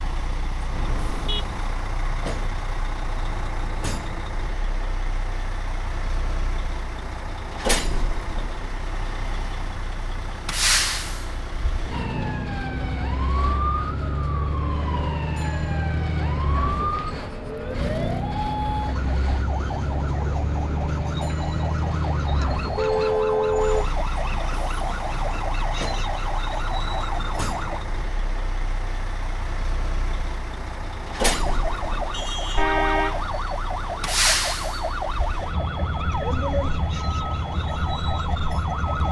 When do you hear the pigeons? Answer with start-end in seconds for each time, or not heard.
not heard.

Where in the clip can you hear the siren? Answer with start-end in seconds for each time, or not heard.
11.9-27.8, 31.2-39.0.